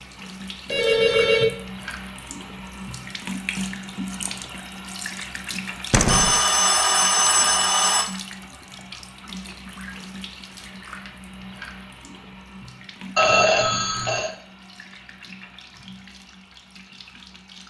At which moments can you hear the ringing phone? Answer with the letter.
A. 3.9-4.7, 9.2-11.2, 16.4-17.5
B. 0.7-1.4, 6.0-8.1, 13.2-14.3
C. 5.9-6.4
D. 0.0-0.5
B.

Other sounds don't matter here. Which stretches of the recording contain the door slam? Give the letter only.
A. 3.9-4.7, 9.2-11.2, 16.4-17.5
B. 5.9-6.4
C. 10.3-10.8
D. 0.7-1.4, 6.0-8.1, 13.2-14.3
B.